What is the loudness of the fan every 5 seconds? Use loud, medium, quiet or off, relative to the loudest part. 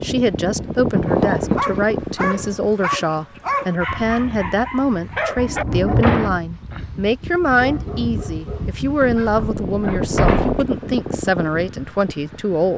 loud, medium, loud.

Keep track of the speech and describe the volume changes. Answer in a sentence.
The volume of the speech stays about the same.